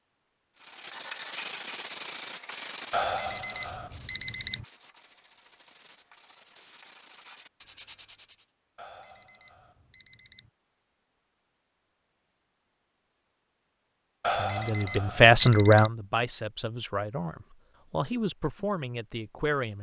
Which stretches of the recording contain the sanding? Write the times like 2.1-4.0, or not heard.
0.6-8.4.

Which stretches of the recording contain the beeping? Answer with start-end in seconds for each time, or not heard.
2.9-4.7, 8.8-10.5, 14.2-15.9.